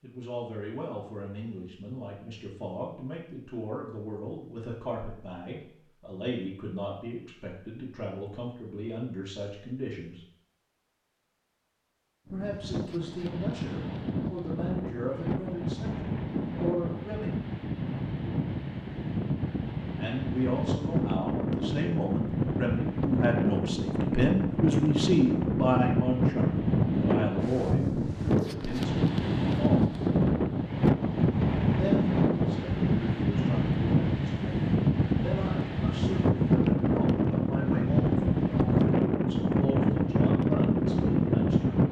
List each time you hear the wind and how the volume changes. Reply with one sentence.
The wind can be heard from 12.2 to 41.8 s, getting louder.